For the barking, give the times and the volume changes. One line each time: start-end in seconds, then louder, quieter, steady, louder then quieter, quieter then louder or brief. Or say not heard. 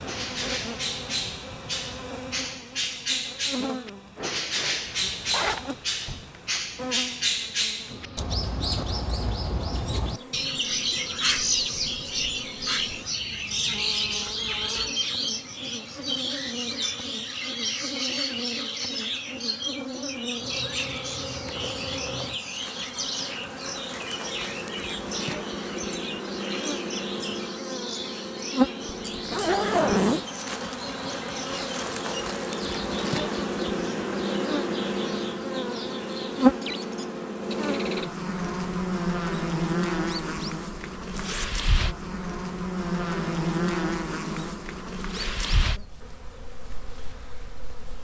not heard.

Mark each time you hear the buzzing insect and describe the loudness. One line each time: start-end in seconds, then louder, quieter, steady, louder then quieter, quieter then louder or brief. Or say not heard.
0.0-47.9 louder.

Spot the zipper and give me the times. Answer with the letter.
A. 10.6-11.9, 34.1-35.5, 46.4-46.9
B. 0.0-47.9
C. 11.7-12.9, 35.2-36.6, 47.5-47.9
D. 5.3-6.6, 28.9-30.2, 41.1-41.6
D.